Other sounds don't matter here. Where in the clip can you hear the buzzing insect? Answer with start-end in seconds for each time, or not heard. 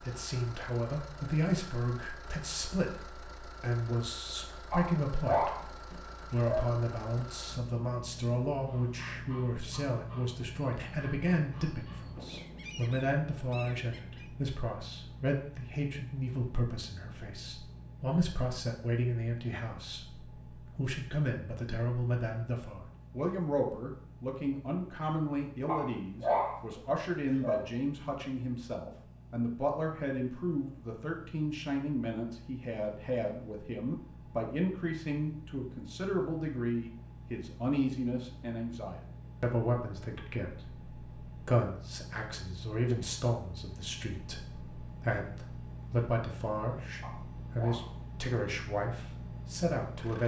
not heard.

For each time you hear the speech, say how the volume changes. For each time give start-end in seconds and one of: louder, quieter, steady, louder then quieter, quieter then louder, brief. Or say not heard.
0.0-50.2 steady.